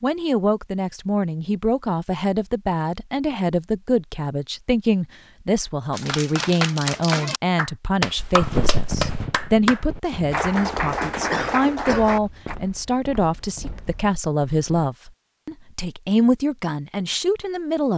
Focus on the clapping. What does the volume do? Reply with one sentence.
The loudness of the clapping stays about the same.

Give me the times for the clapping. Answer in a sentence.
You can hear the clapping from 5.9 to 12.6 s.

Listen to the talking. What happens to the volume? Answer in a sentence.
The loudness of the talking stays about the same.